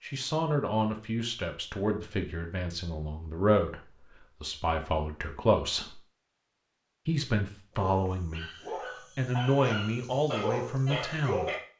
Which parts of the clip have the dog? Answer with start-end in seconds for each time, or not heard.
7.7-11.6.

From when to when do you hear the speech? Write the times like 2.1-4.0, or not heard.
0.0-6.0, 7.0-8.5, 9.2-11.5.